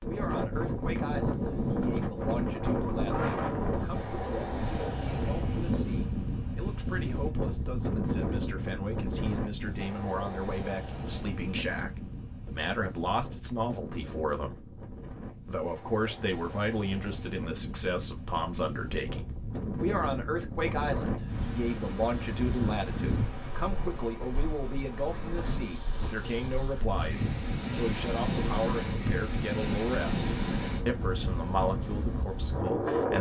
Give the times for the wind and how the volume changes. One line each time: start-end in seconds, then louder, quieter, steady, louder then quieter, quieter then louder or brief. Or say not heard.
0.0-33.1 quieter then louder.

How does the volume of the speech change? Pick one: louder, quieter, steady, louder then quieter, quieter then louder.
louder.